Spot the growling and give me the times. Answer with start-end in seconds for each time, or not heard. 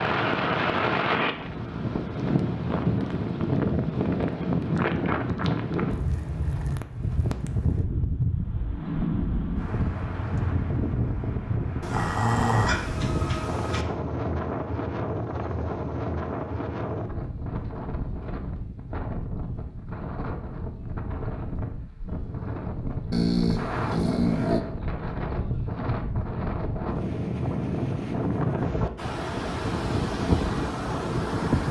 11.8-13.8, 23.1-24.6.